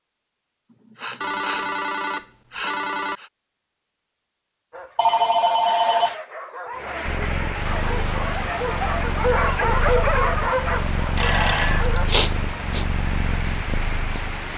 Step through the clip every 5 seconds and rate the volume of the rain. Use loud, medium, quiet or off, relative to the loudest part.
off, loud, loud.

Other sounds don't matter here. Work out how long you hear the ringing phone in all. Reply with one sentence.
You can hear the ringing phone for 4 seconds altogether.